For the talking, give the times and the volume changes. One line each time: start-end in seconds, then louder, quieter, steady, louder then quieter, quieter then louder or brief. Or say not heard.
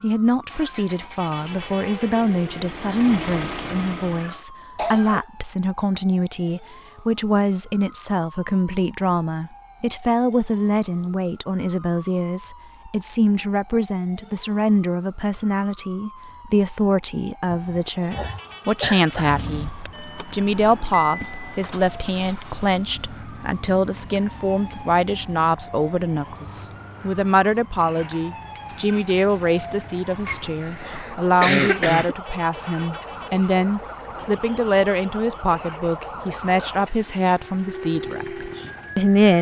0.0-19.7 steady
20.3-39.3 steady.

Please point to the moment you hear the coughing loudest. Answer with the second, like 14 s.
32 s.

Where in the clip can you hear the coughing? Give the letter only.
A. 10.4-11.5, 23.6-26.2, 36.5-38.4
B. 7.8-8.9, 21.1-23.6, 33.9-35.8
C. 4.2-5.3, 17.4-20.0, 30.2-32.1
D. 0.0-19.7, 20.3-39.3
C.